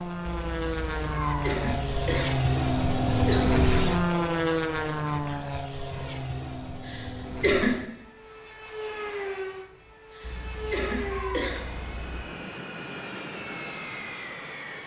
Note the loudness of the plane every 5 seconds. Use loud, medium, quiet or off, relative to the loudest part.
loud, medium, medium.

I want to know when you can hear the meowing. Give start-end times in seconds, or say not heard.
0.2-2.0, 10.2-12.2.